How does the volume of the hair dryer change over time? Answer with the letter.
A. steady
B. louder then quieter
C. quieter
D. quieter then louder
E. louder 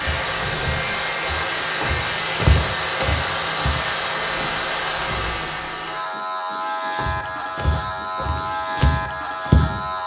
A.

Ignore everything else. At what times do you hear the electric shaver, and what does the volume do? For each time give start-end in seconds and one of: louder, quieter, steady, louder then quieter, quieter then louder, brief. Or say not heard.
0.0-10.0 steady.